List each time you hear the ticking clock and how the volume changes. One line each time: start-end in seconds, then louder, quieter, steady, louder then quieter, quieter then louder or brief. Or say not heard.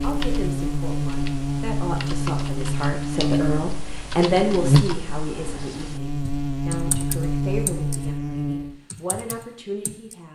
not heard.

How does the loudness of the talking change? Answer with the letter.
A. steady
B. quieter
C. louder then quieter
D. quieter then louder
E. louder
C.